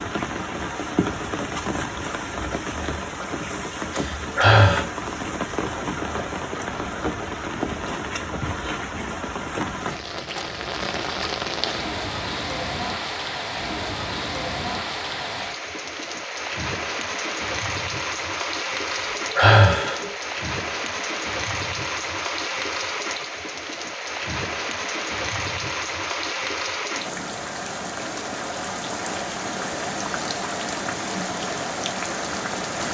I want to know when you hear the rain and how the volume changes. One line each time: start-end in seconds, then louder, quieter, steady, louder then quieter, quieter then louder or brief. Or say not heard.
0.0-32.8 steady.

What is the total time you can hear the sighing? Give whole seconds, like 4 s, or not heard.
2 s.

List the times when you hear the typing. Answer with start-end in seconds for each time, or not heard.
not heard.